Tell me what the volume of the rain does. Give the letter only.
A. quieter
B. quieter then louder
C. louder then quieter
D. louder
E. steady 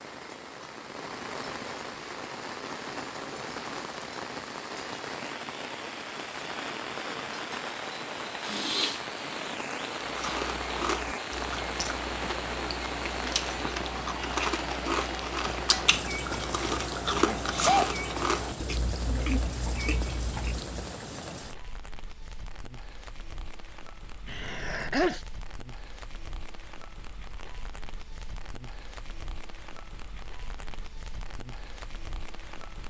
A.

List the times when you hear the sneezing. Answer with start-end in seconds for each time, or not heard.
8.4-9.0, 17.2-17.9, 24.2-25.2.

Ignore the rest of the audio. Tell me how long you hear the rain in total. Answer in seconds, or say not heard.
33 s.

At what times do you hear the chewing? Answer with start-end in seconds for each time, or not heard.
10.1-20.8.